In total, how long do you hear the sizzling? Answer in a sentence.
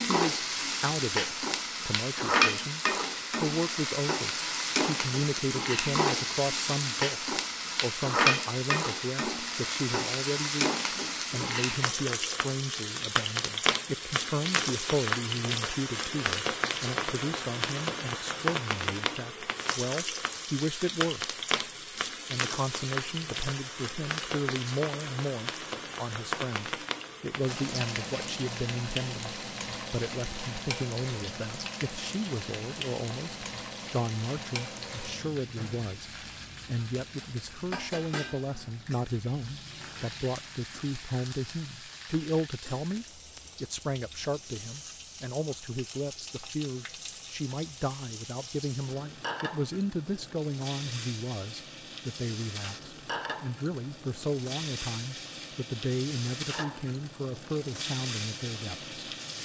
You can hear the sizzling for 59 seconds altogether.